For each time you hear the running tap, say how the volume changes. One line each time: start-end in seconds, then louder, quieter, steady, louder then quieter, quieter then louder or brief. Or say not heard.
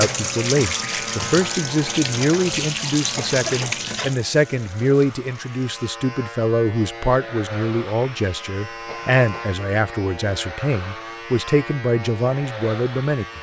0.0-5.8 quieter.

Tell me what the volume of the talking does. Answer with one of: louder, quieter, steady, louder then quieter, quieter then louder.
steady.